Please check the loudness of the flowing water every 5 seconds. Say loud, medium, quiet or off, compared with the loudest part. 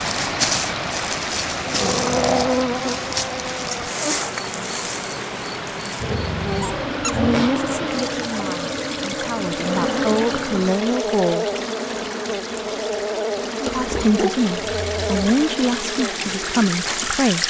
loud, medium, medium, loud.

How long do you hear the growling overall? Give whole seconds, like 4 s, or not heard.
4 s.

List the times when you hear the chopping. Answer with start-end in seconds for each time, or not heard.
not heard.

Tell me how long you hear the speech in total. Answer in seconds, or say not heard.
8 s.